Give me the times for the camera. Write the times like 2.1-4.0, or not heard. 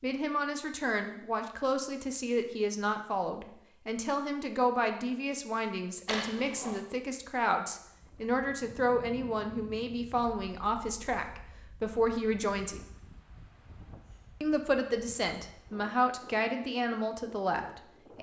6.0-6.8.